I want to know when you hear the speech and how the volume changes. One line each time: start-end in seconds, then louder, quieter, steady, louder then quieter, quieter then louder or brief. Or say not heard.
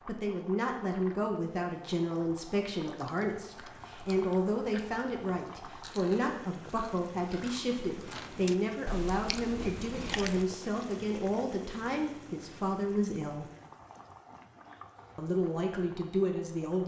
0.1-13.4 steady
15.2-16.8 brief.